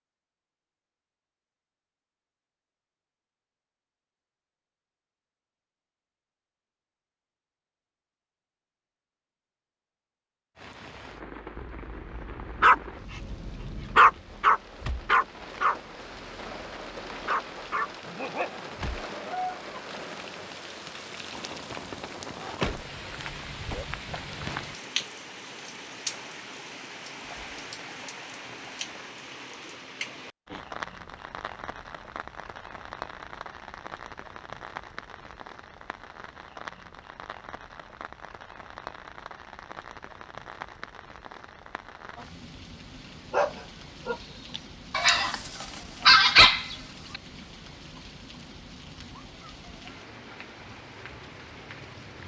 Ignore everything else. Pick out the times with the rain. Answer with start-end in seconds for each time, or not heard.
10.6-52.2.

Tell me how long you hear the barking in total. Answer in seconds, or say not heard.
12 s.